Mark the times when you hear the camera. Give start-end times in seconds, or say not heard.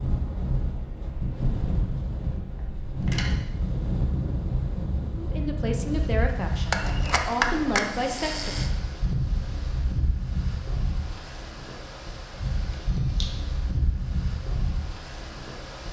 2.5-3.4, 6.7-8.7, 12.7-13.3.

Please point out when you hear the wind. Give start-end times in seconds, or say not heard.
0.0-15.8.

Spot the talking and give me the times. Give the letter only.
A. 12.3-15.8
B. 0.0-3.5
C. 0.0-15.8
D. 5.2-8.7
D.